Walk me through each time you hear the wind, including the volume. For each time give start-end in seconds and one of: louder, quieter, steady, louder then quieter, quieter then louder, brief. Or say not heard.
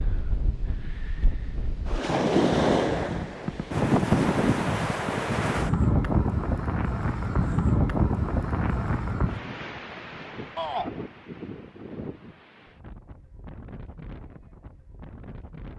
0.0-15.7 quieter.